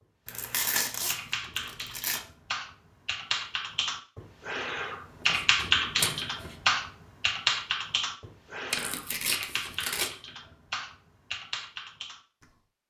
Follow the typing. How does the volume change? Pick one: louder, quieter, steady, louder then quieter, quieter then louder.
louder then quieter.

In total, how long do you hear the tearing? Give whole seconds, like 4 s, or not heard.
5 s.